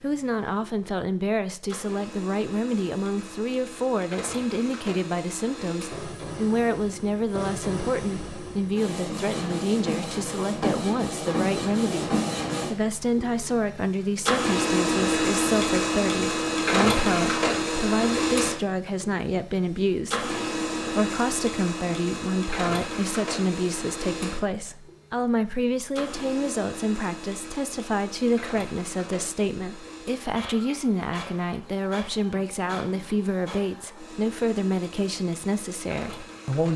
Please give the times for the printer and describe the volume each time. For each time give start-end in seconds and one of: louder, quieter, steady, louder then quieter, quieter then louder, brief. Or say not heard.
0.0-36.7 louder then quieter.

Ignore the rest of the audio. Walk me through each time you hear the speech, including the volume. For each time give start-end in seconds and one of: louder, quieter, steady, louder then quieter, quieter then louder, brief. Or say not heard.
0.0-36.7 steady.